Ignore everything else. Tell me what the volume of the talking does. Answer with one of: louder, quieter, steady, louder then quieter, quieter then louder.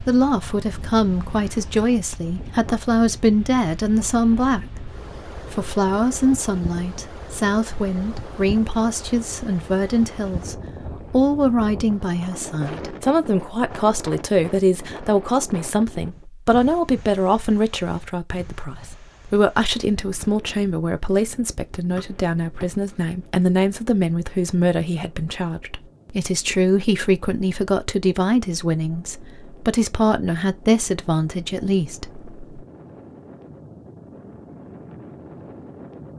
steady.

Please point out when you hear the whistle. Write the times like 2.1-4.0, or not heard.
21.9-22.6.